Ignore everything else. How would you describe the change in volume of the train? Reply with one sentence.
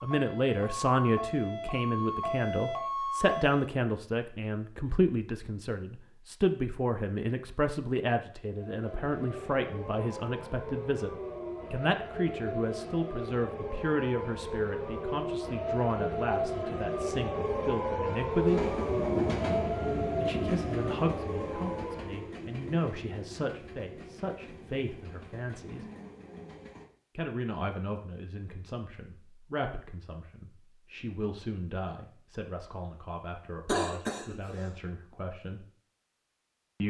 The loudness of the train goes down.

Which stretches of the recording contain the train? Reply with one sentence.
The train can be heard from 18.4 to 26.9 s.